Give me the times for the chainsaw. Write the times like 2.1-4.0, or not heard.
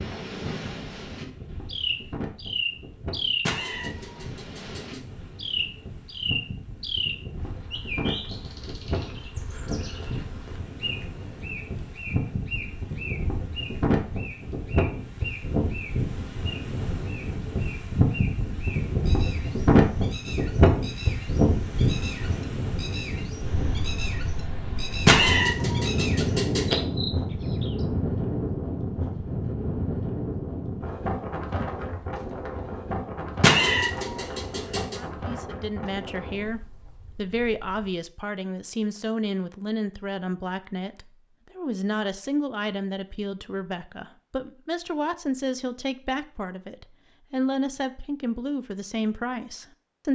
not heard.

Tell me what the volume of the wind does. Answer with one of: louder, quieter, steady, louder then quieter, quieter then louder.
louder then quieter.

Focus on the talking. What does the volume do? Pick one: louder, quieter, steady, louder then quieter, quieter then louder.
steady.